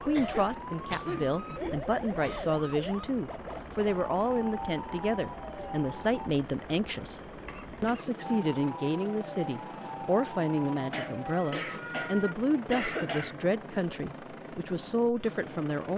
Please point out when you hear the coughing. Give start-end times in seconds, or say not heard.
0.1-2.5, 7.5-8.7, 10.9-13.3.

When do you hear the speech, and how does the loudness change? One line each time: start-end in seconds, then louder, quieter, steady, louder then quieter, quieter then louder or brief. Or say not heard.
0.0-7.2 steady
7.8-15.9 steady.